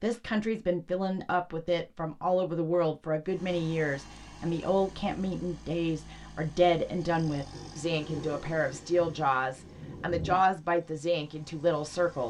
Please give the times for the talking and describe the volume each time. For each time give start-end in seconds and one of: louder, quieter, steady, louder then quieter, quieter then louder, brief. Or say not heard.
0.0-12.2 steady.